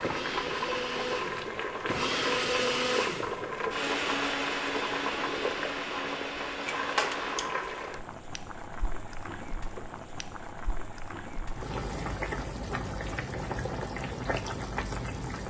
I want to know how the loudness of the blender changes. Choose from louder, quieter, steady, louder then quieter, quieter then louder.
louder then quieter.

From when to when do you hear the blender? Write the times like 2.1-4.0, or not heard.
0.0-7.4.